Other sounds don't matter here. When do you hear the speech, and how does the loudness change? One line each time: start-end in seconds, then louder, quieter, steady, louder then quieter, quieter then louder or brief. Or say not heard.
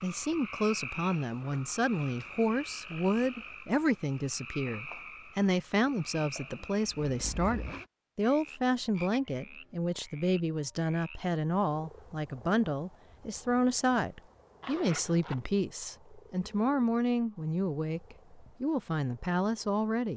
0.0-20.1 steady.